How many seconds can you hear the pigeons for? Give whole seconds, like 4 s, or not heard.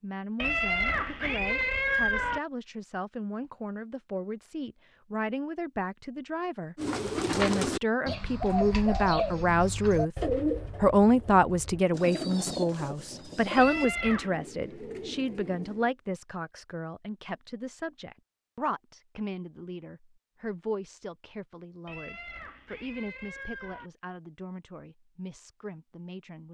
9 s.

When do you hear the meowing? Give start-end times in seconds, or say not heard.
0.3-2.4, 13.6-14.3, 21.9-23.9.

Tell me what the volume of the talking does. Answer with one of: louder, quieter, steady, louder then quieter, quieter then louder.
louder then quieter.